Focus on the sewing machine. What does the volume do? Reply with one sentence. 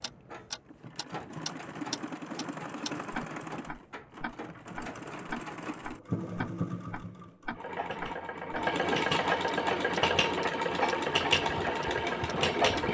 The volume of the sewing machine goes up.